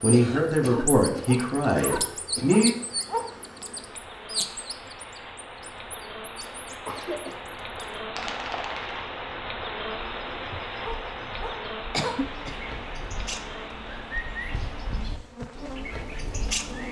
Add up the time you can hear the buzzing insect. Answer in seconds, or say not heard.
17 s.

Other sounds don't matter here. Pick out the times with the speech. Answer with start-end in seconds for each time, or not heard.
0.0-2.8.